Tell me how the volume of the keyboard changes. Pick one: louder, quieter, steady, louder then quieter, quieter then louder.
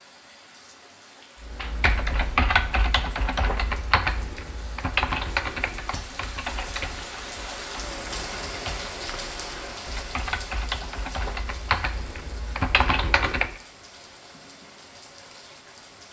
quieter then louder.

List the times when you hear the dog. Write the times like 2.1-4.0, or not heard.
not heard.